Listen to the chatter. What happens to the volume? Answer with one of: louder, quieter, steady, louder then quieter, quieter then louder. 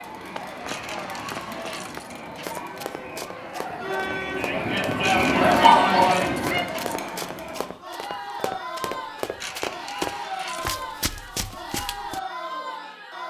louder then quieter.